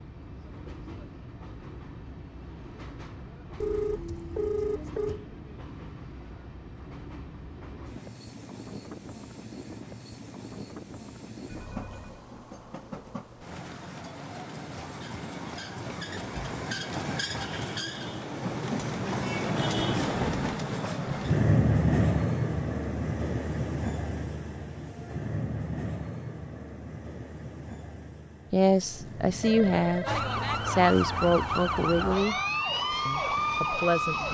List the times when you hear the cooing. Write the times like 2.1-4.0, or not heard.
not heard.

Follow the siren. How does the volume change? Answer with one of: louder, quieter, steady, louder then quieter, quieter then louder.
steady.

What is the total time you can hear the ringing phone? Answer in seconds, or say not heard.
4 s.